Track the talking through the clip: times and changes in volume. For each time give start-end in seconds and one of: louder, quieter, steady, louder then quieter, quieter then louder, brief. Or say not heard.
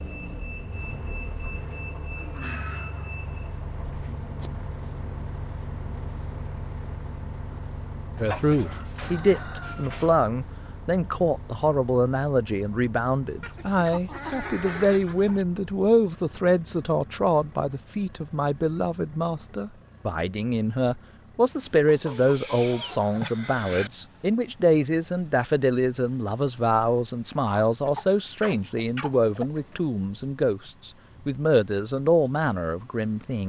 8.2-33.4 steady.